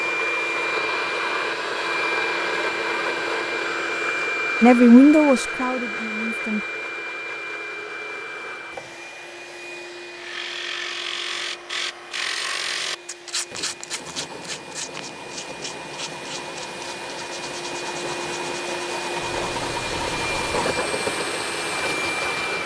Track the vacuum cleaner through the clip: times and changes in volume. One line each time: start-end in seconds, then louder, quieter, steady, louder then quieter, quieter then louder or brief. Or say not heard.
0.0-22.6 quieter then louder.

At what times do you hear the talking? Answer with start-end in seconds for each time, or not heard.
4.6-6.6.